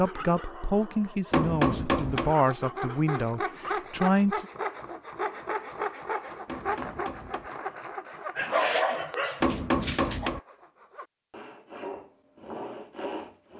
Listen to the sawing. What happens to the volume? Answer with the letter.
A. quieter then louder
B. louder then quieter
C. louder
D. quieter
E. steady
A.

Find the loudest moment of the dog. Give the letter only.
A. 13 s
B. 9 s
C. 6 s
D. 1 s
B.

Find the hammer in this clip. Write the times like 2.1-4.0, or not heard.
1.3-2.3, 6.5-7.5, 9.4-10.4.